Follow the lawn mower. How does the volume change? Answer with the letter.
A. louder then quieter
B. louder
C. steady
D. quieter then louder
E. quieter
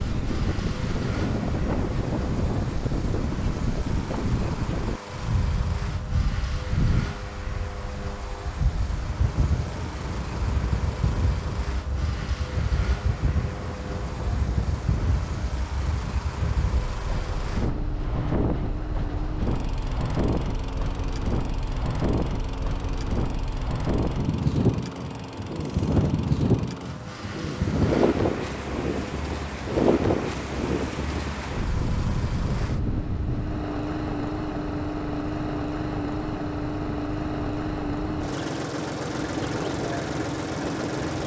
B.